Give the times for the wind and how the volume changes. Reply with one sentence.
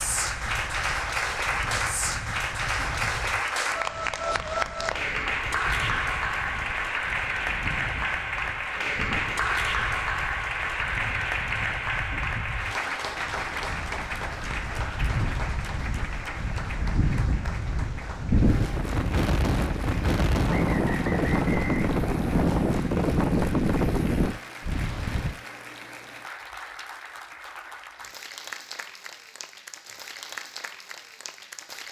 The wind can be heard from 0.0 to 25.4 s, getting louder.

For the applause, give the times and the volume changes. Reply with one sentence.
You can hear the applause from 0.0 to 31.8 s, getting quieter.